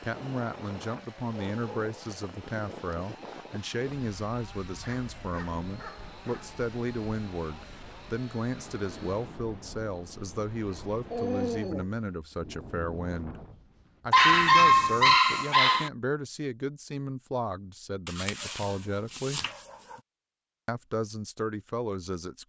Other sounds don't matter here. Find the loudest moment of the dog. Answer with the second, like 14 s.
15 s.